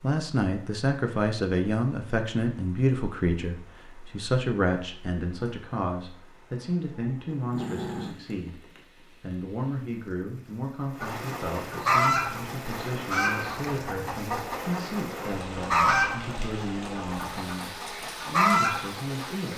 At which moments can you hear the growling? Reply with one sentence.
You can hear the growling from 7.3 to 8.8 s.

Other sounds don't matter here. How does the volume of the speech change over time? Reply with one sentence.
The loudness of the speech goes down.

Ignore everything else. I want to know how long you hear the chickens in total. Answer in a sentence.
You can hear the chickens for 8 seconds altogether.